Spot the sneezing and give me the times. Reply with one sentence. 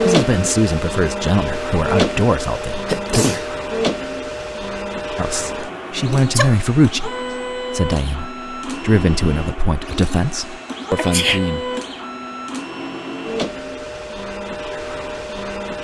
You can hear the sneezing from 2.9 to 3.5 s, from 5.5 to 6.5 s and from 10.9 to 11.4 s.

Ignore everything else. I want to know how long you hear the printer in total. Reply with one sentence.
You can hear the printer for 16 seconds altogether.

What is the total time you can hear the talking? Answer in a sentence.
The talking can be heard for 10 seconds in total.